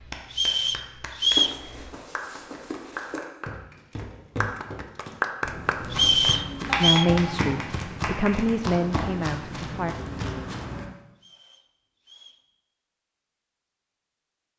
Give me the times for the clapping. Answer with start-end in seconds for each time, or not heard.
0.0-8.8.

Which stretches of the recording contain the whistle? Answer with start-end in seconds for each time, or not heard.
0.3-1.6, 5.9-7.0, 11.2-12.4.